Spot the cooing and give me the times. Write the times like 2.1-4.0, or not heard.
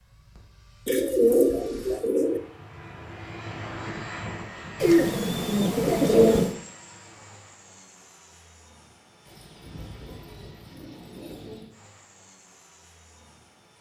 0.8-2.4, 4.8-6.5, 9.2-11.7.